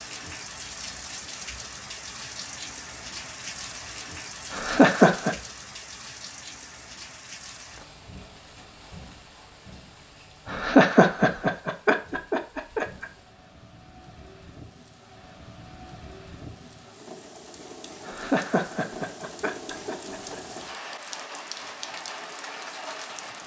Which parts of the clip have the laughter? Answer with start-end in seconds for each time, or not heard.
4.5-5.3, 10.4-13.1, 18.1-20.4.